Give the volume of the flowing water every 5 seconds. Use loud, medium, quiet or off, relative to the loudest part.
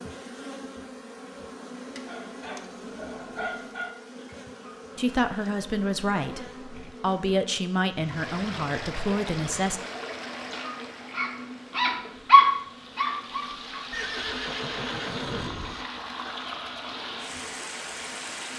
off, loud, loud, loud.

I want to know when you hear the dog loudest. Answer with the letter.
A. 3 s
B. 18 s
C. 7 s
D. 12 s
D.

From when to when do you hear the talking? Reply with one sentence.
You can hear the talking from 5.0 to 9.8 s.